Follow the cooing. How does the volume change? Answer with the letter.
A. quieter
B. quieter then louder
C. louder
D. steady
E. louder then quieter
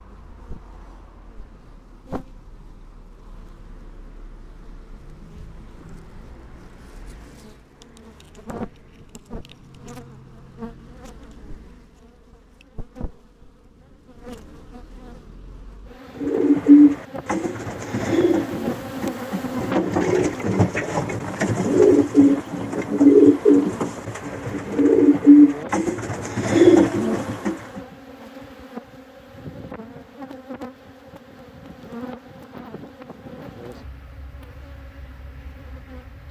B.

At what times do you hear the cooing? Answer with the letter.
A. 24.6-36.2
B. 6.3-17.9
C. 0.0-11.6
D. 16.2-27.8
D.